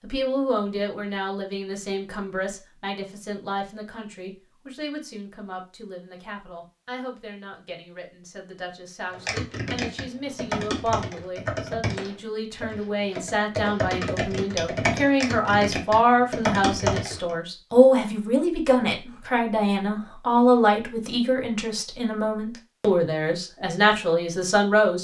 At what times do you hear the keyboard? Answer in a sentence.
The keyboard can be heard from 9.2 to 17.4 s.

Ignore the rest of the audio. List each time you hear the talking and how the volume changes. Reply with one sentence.
You can hear the talking from 0.0 to 24.9 s, getting quieter then louder.